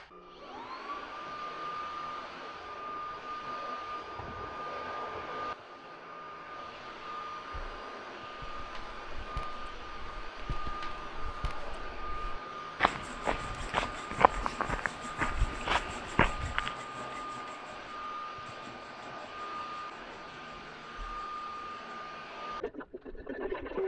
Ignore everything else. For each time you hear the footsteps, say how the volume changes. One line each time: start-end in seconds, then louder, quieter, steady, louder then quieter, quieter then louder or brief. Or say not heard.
8.3-16.8 louder.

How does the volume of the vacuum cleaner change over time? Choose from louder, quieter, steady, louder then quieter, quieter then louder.
steady.